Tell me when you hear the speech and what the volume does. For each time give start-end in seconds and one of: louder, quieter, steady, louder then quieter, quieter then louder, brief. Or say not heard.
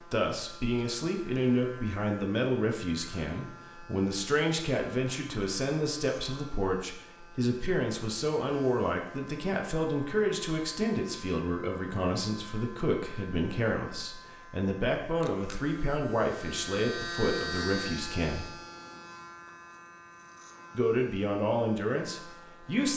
0.1-18.5 steady
20.7-22.9 brief.